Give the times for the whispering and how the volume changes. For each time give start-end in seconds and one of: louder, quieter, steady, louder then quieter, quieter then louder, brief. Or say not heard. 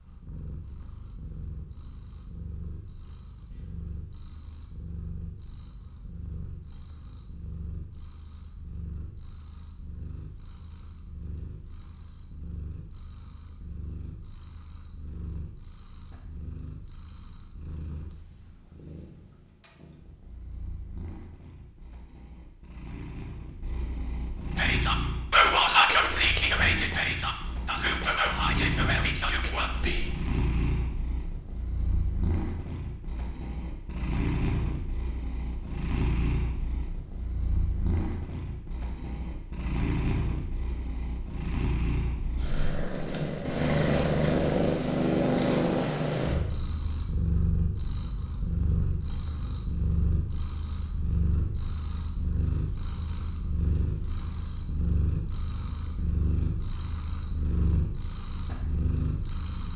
24.6-30.1 quieter.